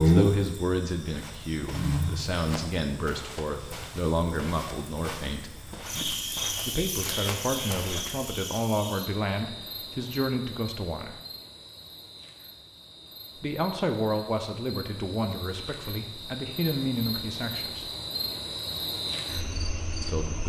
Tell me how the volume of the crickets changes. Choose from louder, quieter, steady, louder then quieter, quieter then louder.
quieter then louder.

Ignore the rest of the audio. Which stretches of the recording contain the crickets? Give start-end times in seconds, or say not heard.
0.0-20.4.